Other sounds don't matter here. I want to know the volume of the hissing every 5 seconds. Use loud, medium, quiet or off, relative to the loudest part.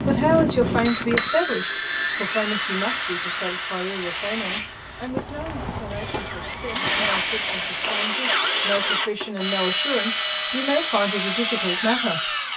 loud, loud, off.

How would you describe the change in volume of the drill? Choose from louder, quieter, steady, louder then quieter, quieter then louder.
quieter then louder.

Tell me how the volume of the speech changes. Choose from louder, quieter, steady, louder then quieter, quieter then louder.
quieter then louder.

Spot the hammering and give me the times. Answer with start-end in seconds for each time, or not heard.
not heard.